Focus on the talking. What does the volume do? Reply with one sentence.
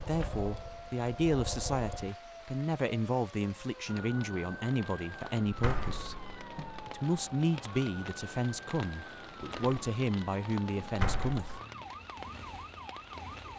The volume of the talking stays about the same.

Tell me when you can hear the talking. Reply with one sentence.
The talking can be heard from 0.0 to 6.2 s and from 6.8 to 11.6 s.